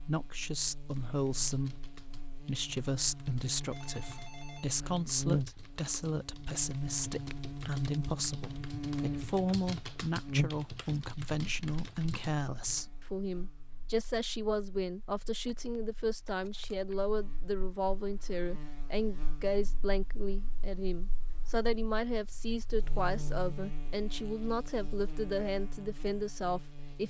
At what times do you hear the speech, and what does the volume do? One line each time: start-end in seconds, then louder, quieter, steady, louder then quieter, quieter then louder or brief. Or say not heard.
0.1-27.0 steady.